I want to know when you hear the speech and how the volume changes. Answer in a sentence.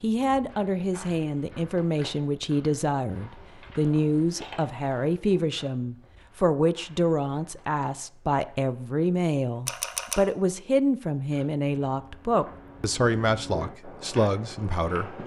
You can hear the speech from 0.0 to 15.2 s, at a steady volume.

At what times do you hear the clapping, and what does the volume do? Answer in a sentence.
The clapping can't be heard in this clip.